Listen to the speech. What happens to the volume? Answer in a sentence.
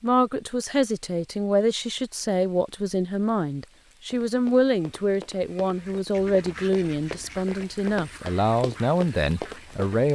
The volume of the speech stays about the same.